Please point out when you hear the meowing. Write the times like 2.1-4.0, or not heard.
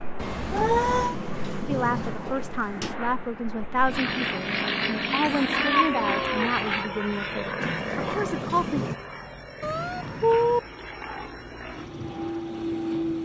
0.2-1.1, 5.2-6.5, 9.6-10.6.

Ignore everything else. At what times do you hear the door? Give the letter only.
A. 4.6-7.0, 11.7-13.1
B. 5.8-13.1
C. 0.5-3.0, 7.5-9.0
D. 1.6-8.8
C.